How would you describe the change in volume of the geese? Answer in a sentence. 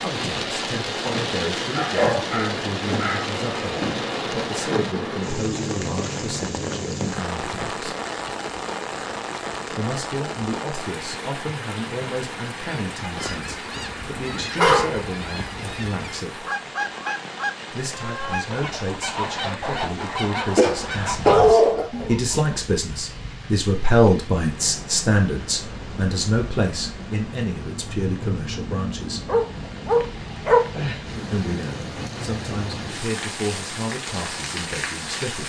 The volume of the geese goes up.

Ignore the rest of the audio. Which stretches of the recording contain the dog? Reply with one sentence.
You can hear the dog from 1.8 to 3.3 s, from 14.6 to 15.1 s, from 20.0 to 21.9 s and from 29.2 to 30.6 s.